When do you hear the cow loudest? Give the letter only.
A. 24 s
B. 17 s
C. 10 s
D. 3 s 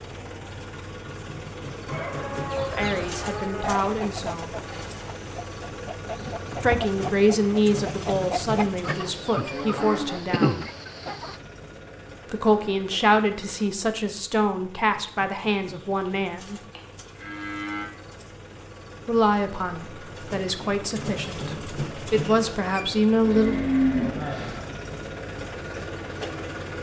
A.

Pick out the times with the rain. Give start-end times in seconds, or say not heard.
not heard.